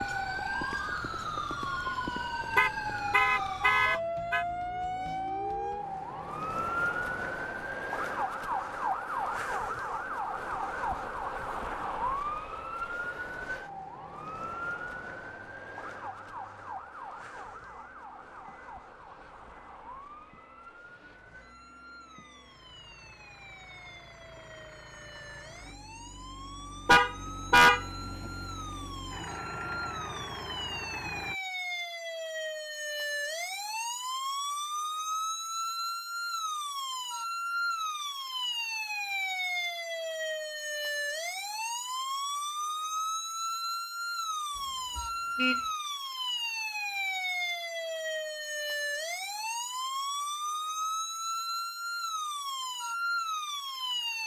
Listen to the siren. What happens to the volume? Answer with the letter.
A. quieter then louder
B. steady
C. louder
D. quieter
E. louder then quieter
A.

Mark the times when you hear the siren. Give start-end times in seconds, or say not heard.
0.0-54.2.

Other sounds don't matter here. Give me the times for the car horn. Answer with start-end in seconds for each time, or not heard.
2.5-4.5, 26.9-27.9, 44.5-45.6.